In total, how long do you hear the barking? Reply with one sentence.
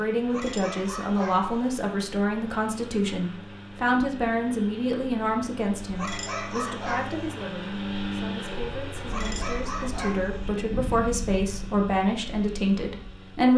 The barking can be heard for 4 seconds in total.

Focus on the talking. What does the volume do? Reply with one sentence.
The volume of the talking goes down, then up.